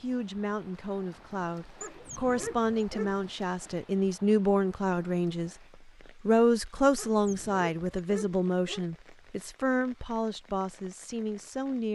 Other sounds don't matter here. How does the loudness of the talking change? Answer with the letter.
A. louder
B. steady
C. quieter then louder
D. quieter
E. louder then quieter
E.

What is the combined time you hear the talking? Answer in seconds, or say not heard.
11 s.